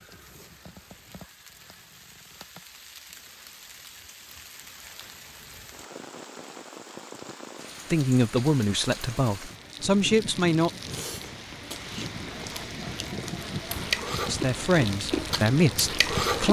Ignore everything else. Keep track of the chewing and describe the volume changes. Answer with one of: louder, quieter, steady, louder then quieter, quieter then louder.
louder.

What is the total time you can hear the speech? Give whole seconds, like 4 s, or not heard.
5 s.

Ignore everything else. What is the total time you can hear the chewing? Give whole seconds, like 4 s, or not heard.
6 s.